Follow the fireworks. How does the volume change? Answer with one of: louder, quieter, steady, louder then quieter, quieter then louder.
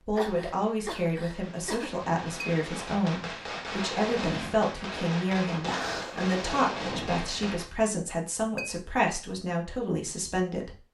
louder.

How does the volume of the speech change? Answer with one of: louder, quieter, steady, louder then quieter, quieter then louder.
steady.